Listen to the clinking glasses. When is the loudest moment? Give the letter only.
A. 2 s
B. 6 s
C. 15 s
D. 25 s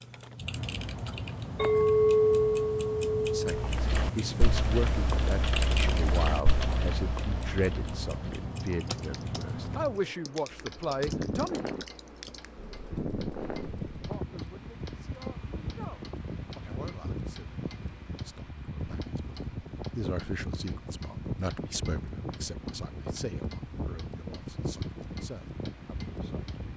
A.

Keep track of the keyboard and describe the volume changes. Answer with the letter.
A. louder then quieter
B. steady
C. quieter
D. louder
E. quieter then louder
C.